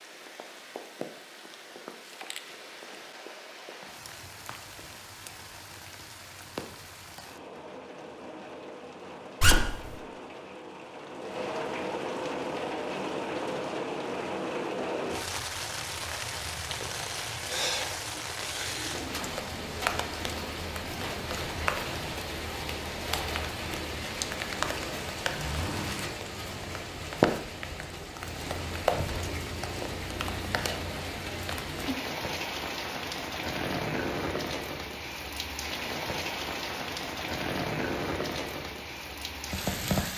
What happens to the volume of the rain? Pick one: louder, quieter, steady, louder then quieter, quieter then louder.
louder.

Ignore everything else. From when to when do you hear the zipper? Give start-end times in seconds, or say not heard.
9.4-9.9, 25.4-26.1.